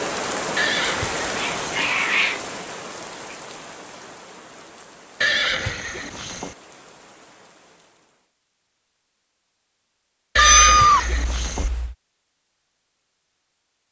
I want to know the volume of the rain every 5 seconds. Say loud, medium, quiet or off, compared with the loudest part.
loud, quiet, off.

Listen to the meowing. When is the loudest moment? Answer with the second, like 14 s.
11 s.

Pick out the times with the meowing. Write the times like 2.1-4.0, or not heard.
1.4-2.4, 10.3-11.9.